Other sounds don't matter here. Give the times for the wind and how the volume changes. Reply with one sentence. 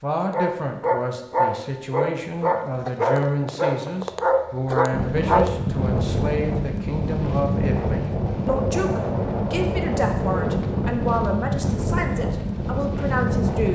The wind can be heard from 4.9 to 13.7 s, at a steady volume.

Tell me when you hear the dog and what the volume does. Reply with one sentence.
You can hear the dog from 0.3 to 5.6 s, at a steady volume.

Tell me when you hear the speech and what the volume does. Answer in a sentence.
You can hear the speech from 0.0 to 13.7 s, at a steady volume.